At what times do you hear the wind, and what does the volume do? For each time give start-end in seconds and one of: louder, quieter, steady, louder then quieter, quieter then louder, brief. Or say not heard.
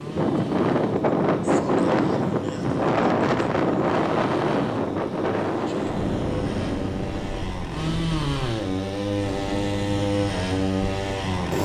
0.0-11.5 quieter.